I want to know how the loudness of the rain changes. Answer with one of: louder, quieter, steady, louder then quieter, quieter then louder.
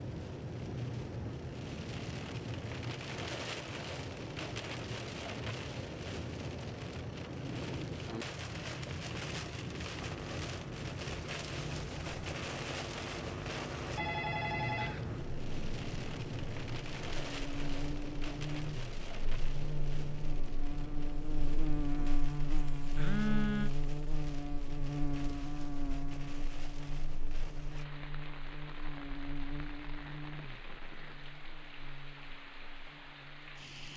quieter.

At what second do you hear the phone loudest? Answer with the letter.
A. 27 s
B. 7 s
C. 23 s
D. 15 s
C.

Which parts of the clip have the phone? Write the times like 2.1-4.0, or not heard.
13.9-15.1, 22.9-23.7.